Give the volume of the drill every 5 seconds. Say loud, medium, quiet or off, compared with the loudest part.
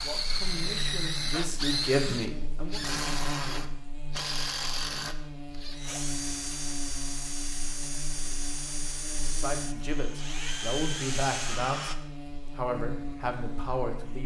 loud, medium, loud.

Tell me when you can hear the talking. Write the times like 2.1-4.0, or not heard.
0.0-2.8, 9.3-14.2.